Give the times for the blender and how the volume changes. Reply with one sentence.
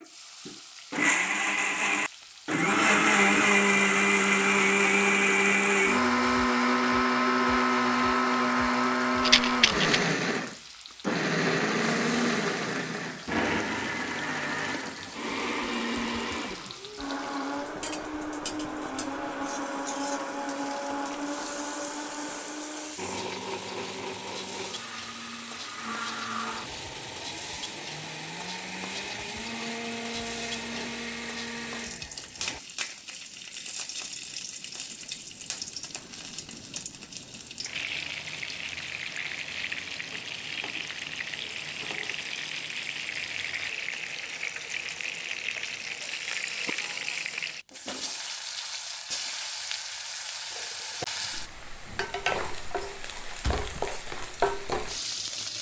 You can hear the blender from 0.0 to 32.6 s, getting quieter.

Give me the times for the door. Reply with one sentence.
The door can be heard from 53.4 to 53.9 s.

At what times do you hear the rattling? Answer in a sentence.
You can hear the rattling from 9.2 to 9.9 s.